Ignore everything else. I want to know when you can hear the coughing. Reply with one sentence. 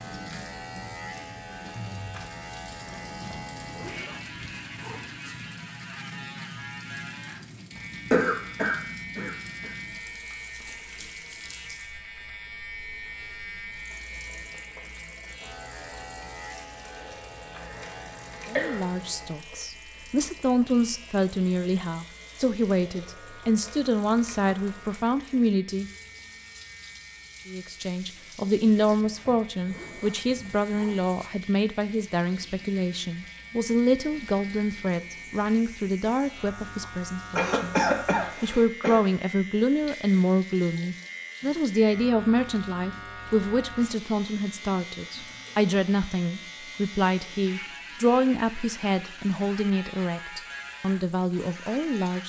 The coughing can be heard from 8.1 to 9.8 s, from 17.6 to 18.9 s and from 37.4 to 39.0 s.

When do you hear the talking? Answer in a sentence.
The talking can be heard from 18.4 to 25.9 s and from 27.4 to 52.2 s.